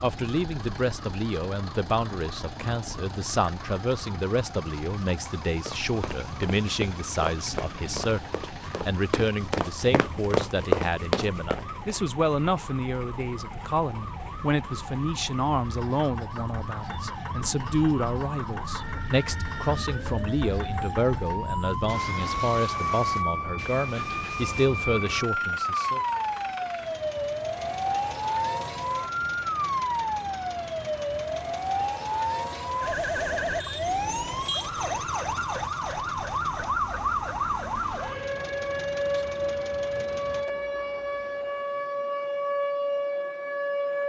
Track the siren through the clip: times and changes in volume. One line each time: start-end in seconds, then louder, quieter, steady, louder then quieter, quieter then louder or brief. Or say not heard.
0.0-44.0 louder.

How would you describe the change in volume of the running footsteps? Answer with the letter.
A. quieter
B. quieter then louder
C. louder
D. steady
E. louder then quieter
C.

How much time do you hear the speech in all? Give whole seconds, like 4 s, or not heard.
26 s.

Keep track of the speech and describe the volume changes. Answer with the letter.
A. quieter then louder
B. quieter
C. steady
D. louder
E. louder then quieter
C.